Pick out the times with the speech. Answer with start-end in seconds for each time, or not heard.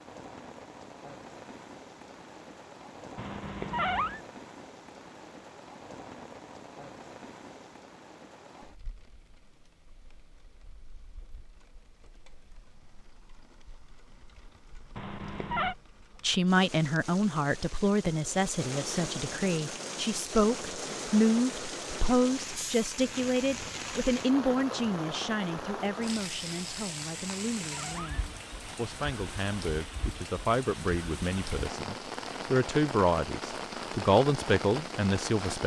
16.2-35.6.